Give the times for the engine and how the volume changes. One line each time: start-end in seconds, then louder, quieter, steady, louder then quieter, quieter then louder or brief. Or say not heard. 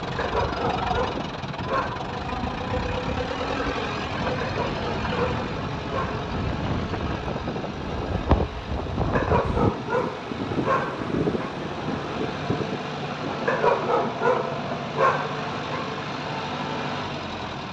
0.0-17.6 quieter then louder.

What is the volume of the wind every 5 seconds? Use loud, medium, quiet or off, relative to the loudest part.
medium, loud, loud, off.